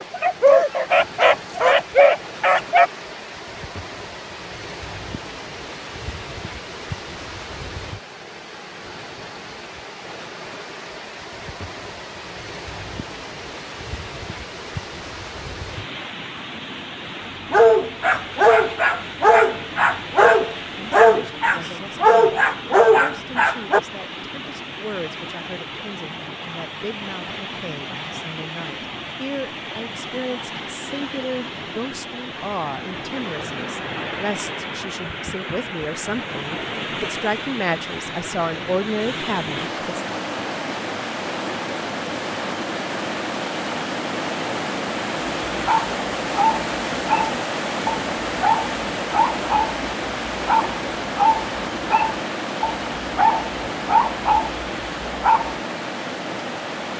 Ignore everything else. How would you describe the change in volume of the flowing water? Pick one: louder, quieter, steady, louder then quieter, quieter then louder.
louder.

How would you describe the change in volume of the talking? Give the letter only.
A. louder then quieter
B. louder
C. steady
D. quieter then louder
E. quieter
B.